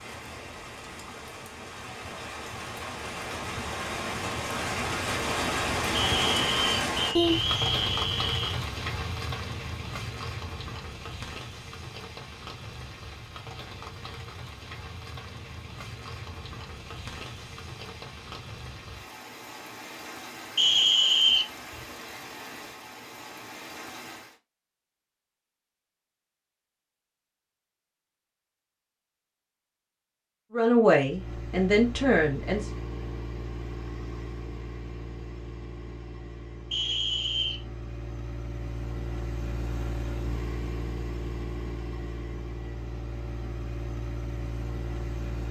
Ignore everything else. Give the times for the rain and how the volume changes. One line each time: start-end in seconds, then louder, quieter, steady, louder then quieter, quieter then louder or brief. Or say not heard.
0.0-24.4 louder then quieter.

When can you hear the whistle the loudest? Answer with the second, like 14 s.
21 s.